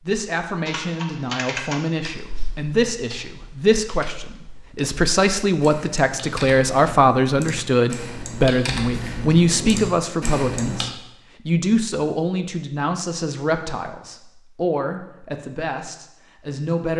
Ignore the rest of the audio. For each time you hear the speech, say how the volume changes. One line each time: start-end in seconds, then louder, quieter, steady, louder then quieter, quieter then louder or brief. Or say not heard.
0.0-16.9 louder then quieter.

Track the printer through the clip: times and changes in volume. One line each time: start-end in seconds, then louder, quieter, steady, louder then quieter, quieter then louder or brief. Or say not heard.
not heard.